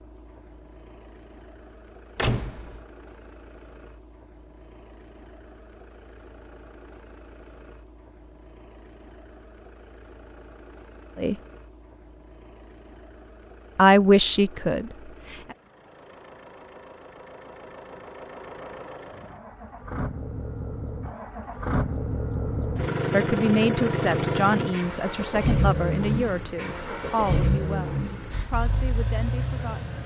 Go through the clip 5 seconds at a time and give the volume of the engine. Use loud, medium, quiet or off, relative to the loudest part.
quiet, quiet, quiet, quiet, loud, loud.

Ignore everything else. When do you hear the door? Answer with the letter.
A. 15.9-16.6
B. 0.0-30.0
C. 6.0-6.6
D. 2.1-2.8
D.